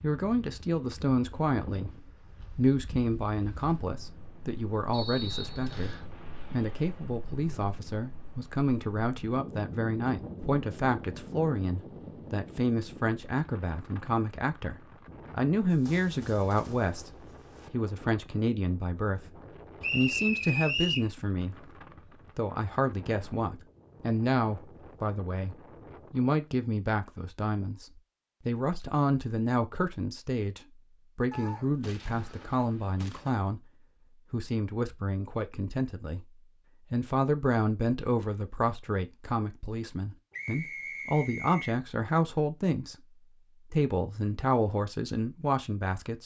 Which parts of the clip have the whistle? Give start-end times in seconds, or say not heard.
4.9-6.0, 19.8-21.1, 40.3-41.8.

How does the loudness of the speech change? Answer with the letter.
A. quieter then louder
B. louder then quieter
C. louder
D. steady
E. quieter
D.